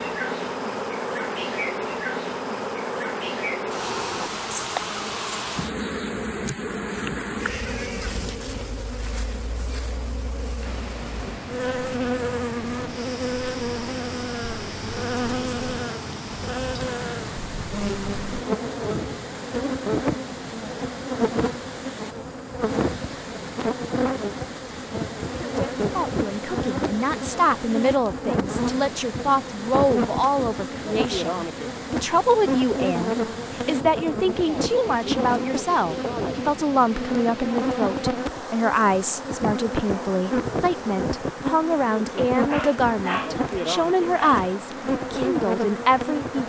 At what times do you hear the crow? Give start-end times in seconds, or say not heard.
not heard.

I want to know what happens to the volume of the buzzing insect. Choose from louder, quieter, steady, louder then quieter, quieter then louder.
steady.